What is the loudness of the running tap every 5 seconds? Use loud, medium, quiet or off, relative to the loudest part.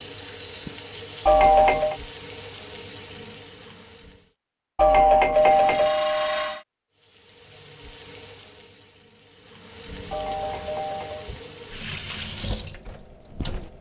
loud, medium, loud.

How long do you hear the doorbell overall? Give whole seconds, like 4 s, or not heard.
4 s.